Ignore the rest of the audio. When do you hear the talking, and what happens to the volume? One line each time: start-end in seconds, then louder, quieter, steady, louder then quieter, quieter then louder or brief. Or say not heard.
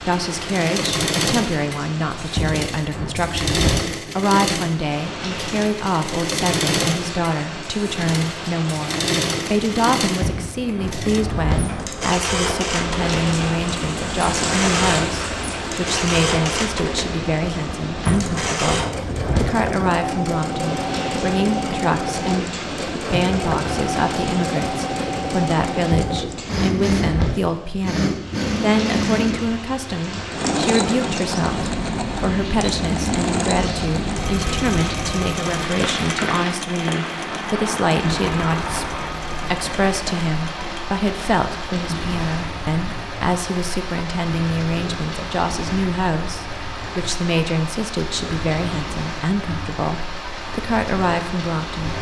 0.1-51.9 steady.